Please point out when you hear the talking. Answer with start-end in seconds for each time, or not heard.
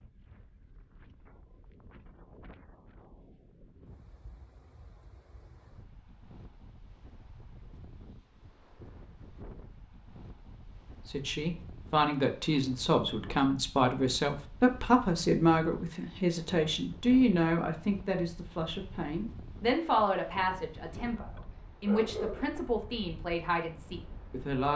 11.1-24.7.